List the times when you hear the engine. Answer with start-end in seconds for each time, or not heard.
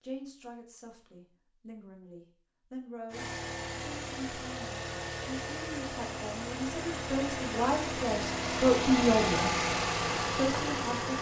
3.1-11.1.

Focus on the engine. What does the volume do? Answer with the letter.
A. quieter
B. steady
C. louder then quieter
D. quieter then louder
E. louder
E.